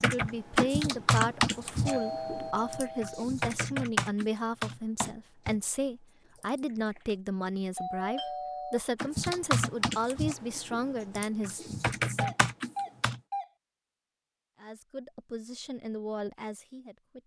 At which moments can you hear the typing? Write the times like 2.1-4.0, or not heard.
0.0-7.2, 8.9-13.2.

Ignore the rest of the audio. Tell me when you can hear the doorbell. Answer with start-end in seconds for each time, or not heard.
1.9-3.2, 7.8-8.8, 12.2-13.5.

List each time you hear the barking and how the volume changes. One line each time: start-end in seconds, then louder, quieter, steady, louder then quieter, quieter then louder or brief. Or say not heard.
not heard.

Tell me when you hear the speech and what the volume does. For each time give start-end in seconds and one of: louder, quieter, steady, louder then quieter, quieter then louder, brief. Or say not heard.
0.0-12.3 steady
14.6-17.2 brief.